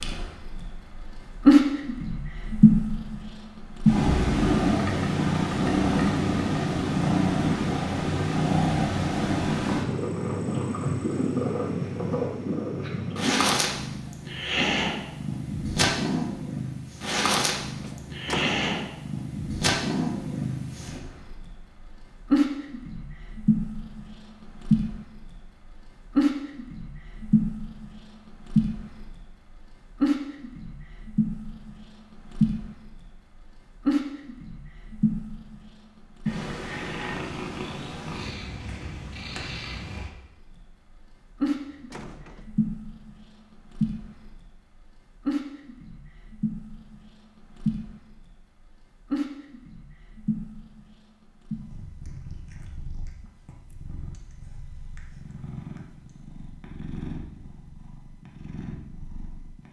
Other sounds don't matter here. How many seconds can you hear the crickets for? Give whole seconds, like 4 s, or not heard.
not heard.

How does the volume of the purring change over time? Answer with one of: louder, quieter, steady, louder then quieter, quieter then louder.
quieter.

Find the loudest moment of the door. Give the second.
18 s.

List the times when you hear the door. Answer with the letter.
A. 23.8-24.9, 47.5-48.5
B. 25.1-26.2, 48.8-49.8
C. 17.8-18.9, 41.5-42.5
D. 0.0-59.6
C.